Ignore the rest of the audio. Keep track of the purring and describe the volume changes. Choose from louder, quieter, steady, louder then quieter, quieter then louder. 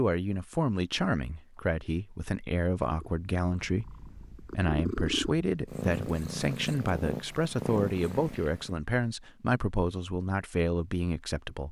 louder.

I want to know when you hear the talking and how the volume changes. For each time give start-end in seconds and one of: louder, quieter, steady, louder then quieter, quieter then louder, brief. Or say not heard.
0.0-11.6 steady.